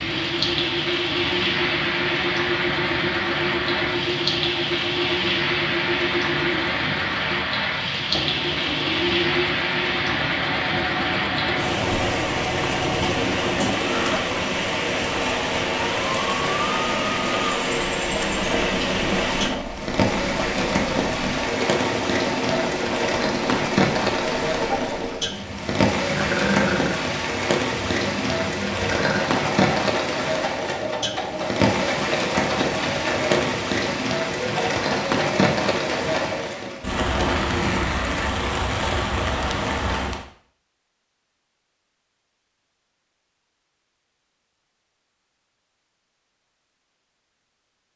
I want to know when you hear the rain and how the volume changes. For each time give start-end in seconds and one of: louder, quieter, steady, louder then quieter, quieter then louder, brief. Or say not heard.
0.0-40.2 steady.